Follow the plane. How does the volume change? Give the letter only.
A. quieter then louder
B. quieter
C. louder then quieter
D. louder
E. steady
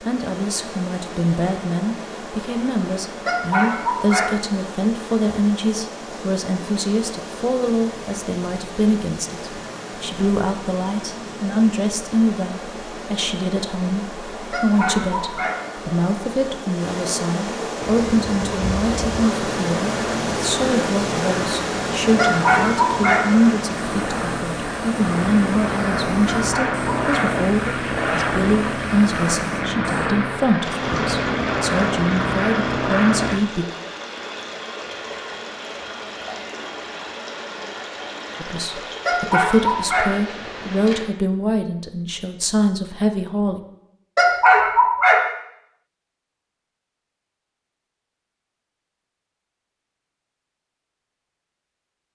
D.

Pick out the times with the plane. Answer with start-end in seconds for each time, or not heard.
17.8-33.4.